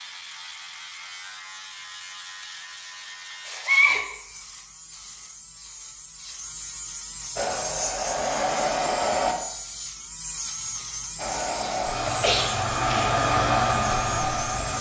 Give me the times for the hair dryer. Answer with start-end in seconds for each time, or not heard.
7.3-9.3, 11.2-14.7.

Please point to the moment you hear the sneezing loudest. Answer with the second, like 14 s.
4 s.